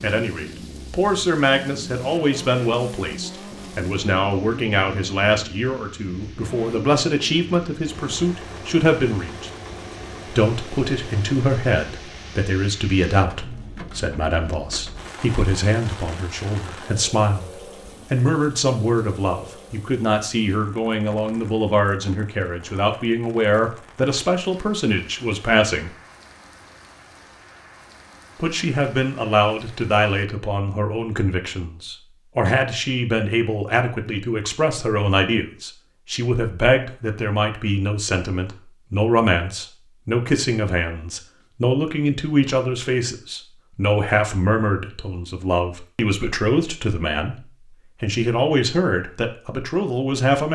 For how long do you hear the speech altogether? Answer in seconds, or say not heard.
47 s.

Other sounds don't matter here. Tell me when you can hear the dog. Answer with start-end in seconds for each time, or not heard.
not heard.